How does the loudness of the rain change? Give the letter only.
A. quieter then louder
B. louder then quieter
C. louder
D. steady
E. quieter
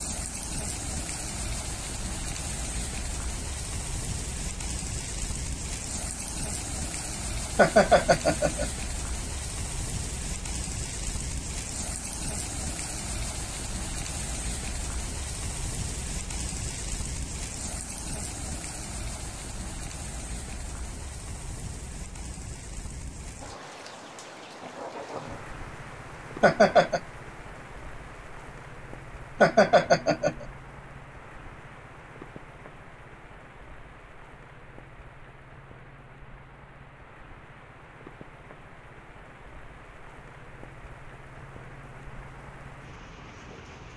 E.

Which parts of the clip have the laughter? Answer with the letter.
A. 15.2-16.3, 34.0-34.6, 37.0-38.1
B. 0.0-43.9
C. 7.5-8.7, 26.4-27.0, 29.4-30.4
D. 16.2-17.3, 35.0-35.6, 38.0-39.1
C.